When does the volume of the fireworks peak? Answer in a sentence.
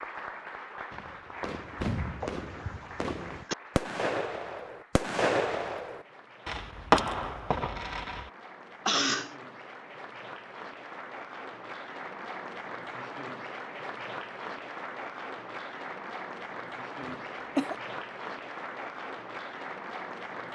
The loudest moment of the fireworks is at 7 seconds.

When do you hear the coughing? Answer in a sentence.
You can hear the coughing from 2.2 to 3.5 s, from 8.8 to 9.3 s and from 17.0 to 17.8 s.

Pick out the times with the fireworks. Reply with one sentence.
You can hear the fireworks from 0.9 to 8.3 s.